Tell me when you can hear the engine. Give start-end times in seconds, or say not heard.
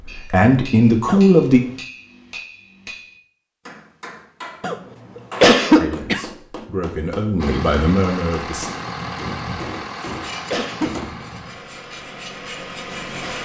7.3-13.4.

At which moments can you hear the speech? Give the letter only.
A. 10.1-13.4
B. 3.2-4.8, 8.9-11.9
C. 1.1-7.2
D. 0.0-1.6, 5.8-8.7
D.